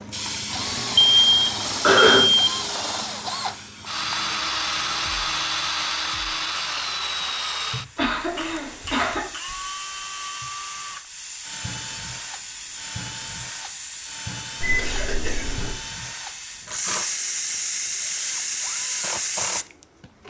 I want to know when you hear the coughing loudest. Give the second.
2 s.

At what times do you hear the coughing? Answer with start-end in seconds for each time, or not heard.
1.8-2.2, 8.0-9.2, 14.8-15.5.